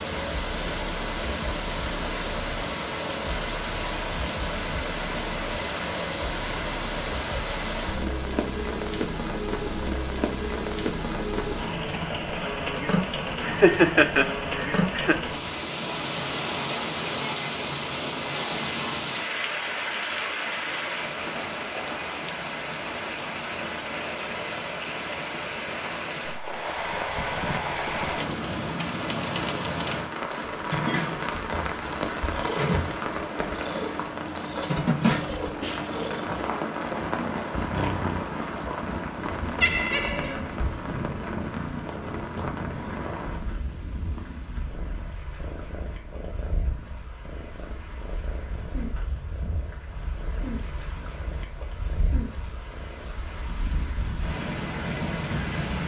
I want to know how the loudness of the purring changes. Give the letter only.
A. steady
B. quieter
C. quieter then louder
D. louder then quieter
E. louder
B.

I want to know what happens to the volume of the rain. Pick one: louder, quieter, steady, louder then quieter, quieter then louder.
quieter.